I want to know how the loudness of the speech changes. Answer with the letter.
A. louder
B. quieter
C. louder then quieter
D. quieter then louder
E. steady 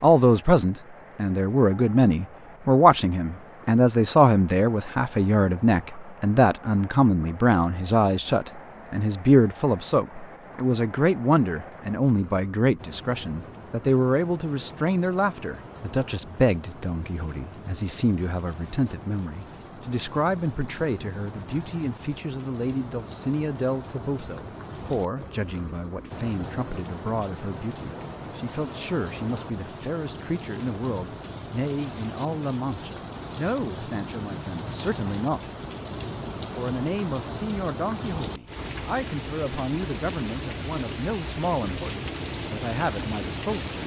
B.